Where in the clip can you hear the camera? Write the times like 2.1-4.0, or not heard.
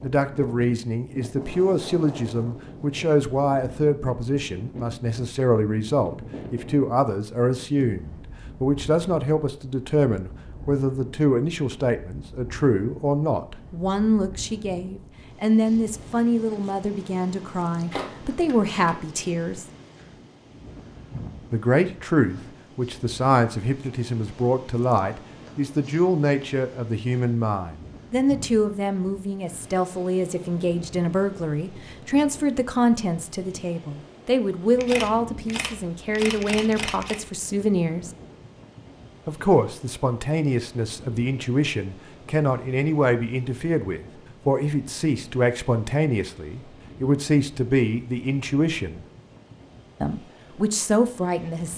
17.9-18.9, 34.8-37.2.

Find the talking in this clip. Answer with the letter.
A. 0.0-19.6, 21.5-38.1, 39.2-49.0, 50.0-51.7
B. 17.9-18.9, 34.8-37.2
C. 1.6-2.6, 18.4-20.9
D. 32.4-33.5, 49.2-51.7
A.